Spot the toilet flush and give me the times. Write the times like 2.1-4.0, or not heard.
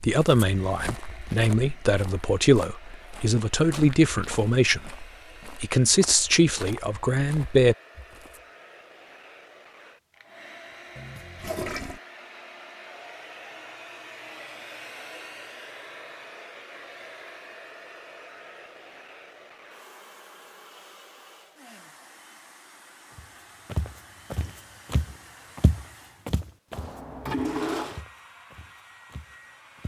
10.9-12.0, 26.7-28.1.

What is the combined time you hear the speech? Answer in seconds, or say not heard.
8 s.